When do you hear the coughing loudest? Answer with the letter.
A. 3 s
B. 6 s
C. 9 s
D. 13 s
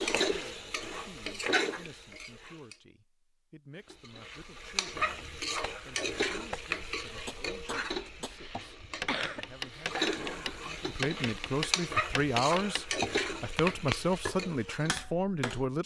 C.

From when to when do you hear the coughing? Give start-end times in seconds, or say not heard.
7.7-9.4.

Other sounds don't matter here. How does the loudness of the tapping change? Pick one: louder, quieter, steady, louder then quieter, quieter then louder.
louder.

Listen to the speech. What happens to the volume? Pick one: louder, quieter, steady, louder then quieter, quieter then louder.
louder.